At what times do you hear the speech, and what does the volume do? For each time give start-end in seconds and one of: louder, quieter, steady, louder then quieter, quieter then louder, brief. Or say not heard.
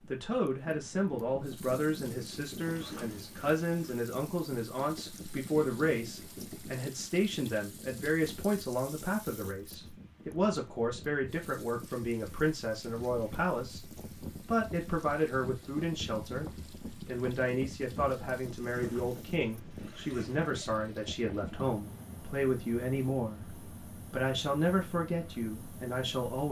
0.1-13.8 steady
14.4-26.4 steady.